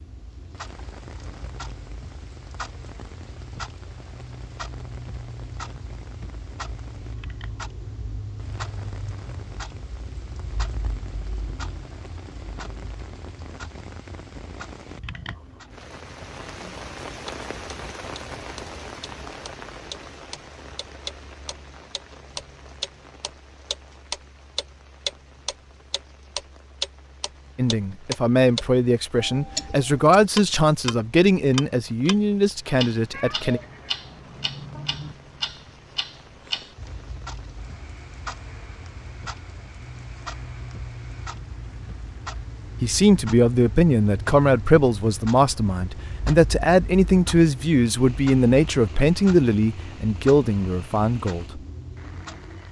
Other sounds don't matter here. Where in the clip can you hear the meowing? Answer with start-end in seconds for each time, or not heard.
33.1-35.1.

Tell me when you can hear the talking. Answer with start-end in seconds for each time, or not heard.
27.6-33.6, 42.8-51.6.